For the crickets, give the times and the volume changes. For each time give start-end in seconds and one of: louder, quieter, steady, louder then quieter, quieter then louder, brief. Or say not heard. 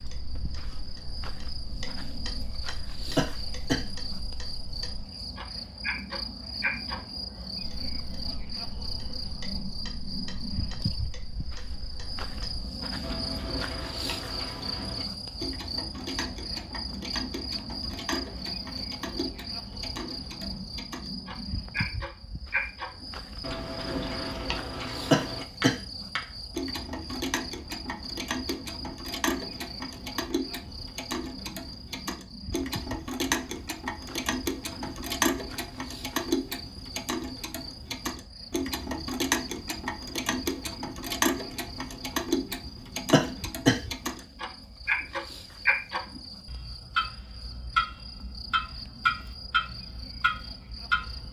0.0-51.2 quieter.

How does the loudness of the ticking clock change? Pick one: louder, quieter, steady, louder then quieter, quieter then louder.
louder.